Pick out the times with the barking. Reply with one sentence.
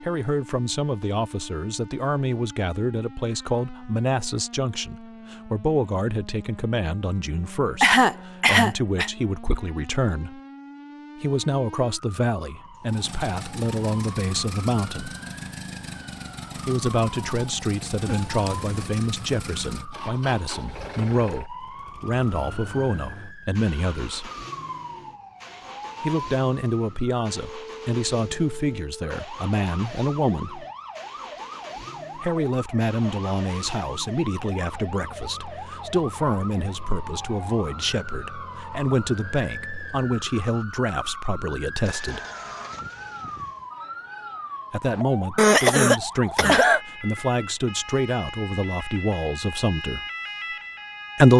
You can't hear the barking here.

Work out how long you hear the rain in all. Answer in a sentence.
You can't hear the rain here.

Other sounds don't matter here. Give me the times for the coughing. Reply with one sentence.
You can hear the coughing from 7.8 to 9.1 s, from 18.1 to 18.7 s and from 45.4 to 46.8 s.